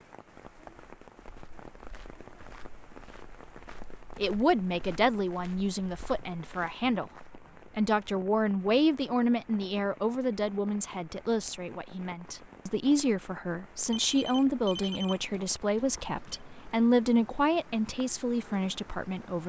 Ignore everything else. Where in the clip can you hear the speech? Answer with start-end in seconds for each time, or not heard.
4.2-19.4.